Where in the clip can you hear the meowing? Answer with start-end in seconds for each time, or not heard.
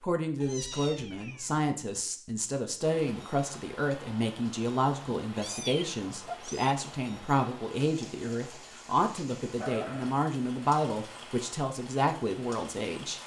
0.4-2.0, 5.3-6.8, 9.6-10.2.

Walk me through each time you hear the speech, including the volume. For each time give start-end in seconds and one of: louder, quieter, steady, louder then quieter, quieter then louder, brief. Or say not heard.
0.0-13.2 steady.